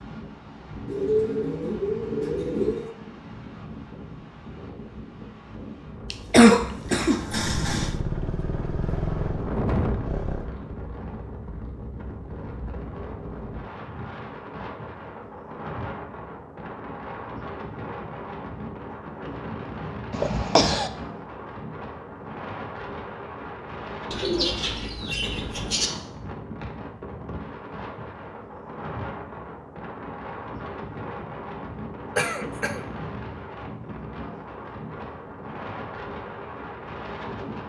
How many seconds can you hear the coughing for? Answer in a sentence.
You can hear the coughing for 3 seconds altogether.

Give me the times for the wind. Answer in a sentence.
The wind can be heard from 0.0 to 37.6 s.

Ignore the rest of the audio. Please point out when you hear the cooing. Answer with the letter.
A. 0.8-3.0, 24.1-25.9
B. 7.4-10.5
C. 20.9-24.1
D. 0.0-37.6
A.